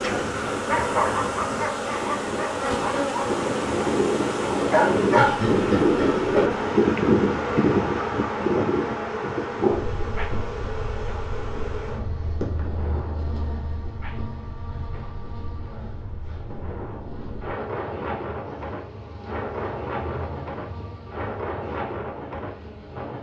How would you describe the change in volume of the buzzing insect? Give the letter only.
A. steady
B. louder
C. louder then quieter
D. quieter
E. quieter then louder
D.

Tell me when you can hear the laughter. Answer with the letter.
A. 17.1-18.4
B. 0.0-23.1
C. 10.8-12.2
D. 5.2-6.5
D.